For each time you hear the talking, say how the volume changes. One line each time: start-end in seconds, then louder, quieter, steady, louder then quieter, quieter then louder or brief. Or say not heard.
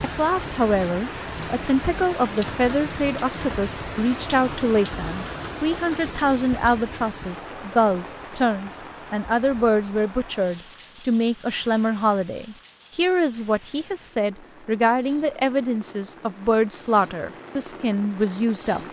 0.0-18.8 steady.